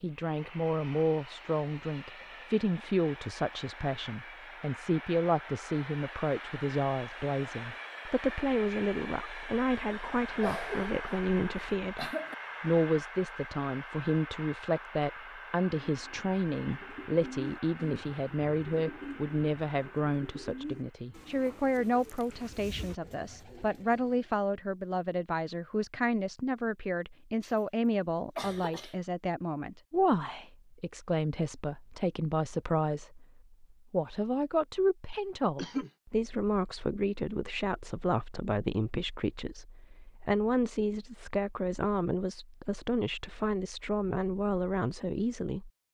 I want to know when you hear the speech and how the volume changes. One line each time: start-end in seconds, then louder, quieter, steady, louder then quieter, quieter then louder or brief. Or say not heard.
0.0-45.8 steady.